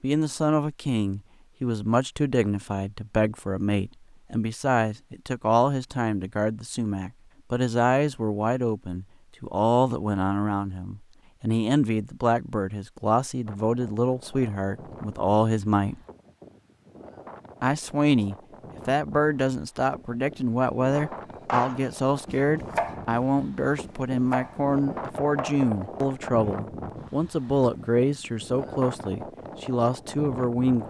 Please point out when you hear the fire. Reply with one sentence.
You can't hear the fire here.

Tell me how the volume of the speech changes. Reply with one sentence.
The volume of the speech stays about the same.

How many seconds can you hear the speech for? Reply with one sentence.
The speech can be heard for 29 seconds in total.